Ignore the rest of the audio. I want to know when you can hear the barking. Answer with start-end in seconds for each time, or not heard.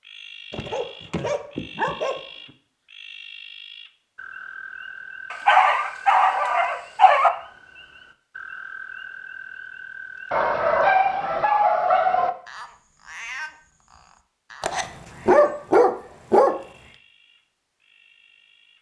0.5-2.2, 5.3-7.3, 10.3-12.3, 14.6-16.6.